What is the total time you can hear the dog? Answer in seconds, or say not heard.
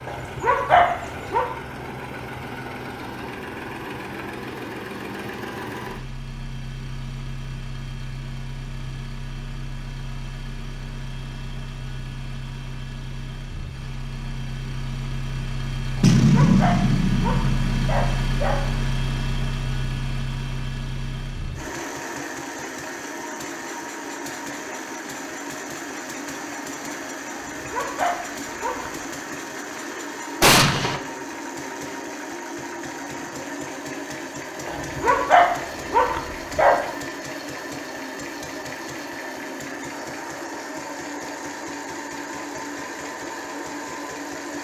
8 s.